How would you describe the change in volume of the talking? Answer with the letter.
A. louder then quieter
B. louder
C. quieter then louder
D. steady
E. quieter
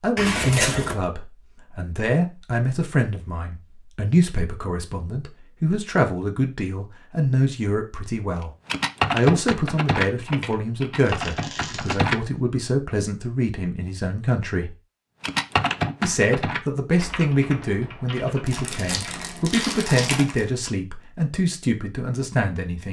D.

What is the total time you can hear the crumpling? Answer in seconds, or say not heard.
3 s.